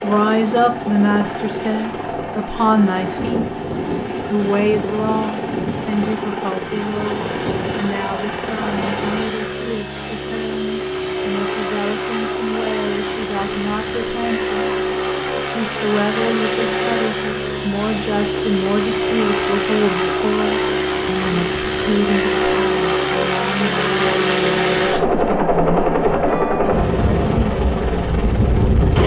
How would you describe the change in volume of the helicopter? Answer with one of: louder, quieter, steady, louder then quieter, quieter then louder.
louder.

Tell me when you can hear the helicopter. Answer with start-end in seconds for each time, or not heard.
0.0-29.0.